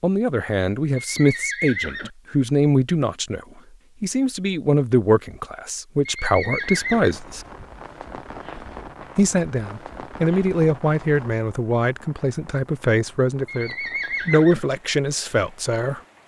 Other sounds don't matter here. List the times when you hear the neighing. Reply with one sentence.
You can hear the neighing from 0.9 to 2.1 s, from 6.0 to 7.2 s and from 13.4 to 14.7 s.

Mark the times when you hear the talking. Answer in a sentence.
You can hear the talking from 0.0 to 7.5 s and from 9.2 to 16.0 s.